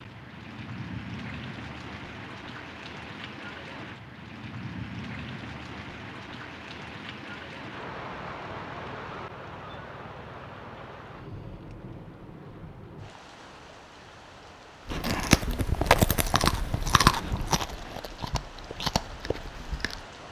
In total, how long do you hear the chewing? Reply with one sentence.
The chewing can be heard for 5 seconds in total.